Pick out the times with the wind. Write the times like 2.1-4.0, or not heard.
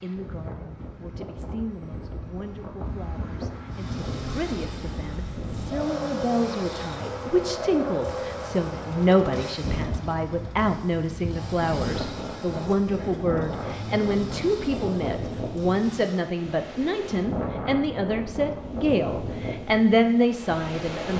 0.0-21.1.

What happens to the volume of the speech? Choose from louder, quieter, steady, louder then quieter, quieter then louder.
louder.